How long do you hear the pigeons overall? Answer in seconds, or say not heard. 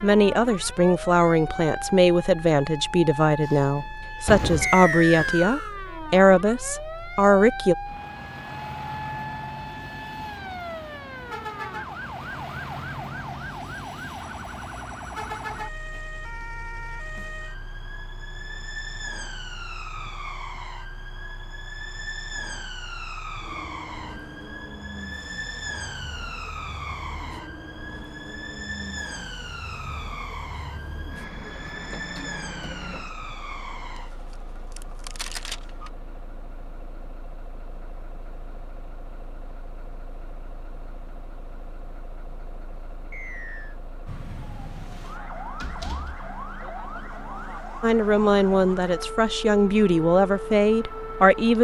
not heard.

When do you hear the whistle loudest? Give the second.
5 s.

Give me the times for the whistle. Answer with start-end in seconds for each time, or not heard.
4.6-5.8, 43.1-43.8.